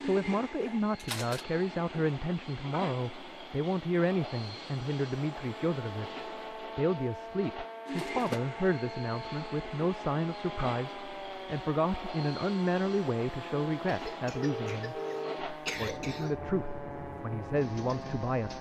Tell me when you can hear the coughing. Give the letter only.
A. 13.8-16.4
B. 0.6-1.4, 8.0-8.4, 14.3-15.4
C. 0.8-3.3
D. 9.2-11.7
A.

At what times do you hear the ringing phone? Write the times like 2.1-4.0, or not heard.
0.6-1.4, 8.0-8.4, 14.3-15.4.